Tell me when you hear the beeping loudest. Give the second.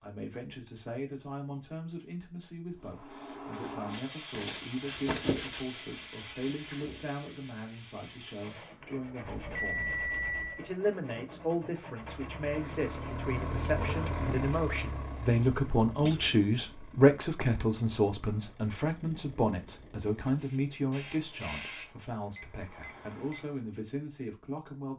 10 s.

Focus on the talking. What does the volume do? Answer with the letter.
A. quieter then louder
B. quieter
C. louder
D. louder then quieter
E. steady
D.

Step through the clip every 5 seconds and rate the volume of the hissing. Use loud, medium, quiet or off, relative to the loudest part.
loud, loud, off, off, medium.